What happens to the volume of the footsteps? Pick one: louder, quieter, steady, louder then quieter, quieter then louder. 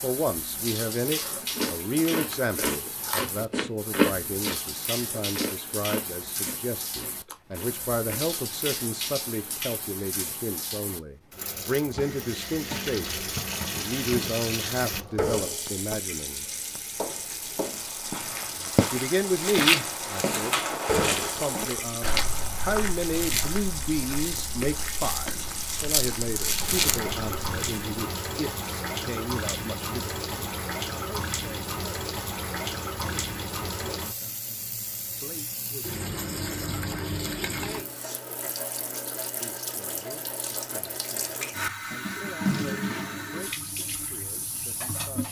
louder then quieter.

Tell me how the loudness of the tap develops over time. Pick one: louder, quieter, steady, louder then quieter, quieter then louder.
steady.